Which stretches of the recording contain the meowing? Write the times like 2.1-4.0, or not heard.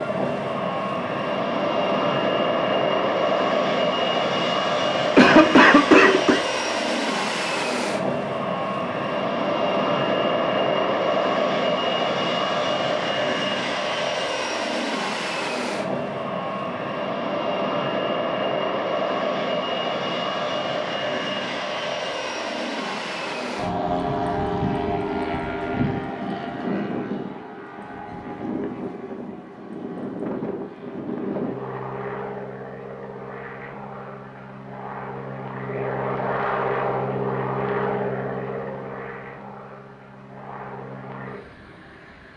not heard.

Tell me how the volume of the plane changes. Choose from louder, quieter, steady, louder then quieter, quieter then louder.
quieter.